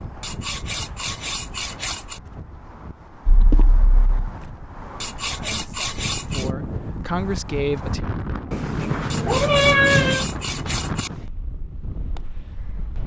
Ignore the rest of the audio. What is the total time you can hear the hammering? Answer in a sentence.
The hammering can't be heard in this clip.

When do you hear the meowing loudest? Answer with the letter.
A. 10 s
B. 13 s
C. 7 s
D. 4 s
A.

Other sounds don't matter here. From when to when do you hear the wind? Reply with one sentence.
You can hear the wind from 0.0 to 13.0 s.